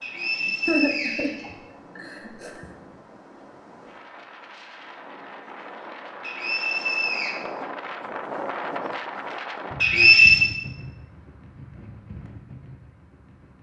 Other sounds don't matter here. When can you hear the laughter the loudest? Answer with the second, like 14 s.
1 s.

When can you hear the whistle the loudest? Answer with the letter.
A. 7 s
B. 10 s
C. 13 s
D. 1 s
B.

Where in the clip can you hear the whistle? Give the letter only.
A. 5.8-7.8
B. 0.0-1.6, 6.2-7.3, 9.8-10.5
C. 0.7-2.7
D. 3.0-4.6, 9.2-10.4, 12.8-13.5
B.